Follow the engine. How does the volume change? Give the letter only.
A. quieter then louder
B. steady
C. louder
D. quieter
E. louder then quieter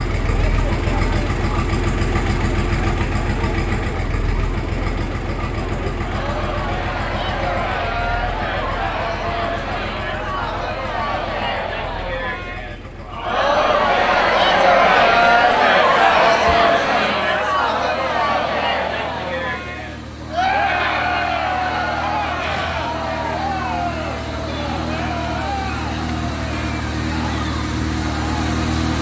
A.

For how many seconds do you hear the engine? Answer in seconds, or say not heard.
29 s.